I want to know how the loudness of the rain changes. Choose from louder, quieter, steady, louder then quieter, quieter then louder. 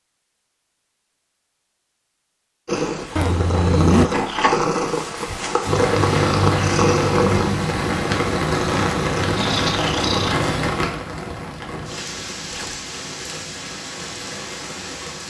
quieter.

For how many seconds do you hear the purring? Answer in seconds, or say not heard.
8 s.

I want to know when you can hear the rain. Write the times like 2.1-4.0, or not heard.
5.7-15.2.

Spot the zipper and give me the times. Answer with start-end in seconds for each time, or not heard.
3.1-4.1, 12.4-12.8.